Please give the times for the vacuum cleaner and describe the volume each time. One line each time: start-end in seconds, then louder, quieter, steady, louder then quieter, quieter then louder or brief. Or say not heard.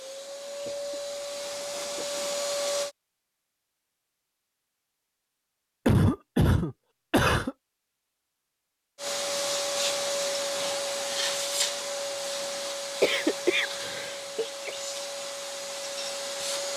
0.0-2.9 brief
8.9-16.7 quieter.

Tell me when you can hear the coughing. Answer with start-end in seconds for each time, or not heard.
0.7-2.2, 5.8-7.5, 13.0-14.8.